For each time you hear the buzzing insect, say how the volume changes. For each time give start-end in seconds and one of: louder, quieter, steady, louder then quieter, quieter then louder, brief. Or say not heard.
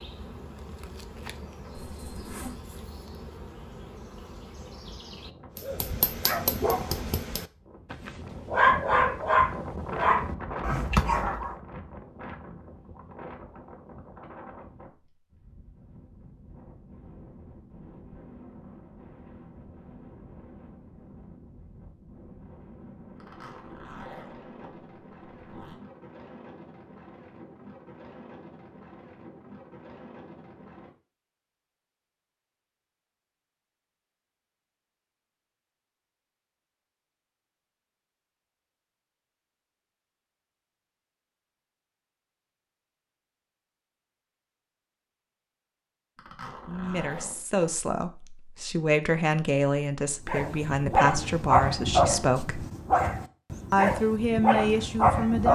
0.0-5.3 steady.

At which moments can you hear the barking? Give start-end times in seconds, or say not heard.
5.5-11.6, 50.2-55.5.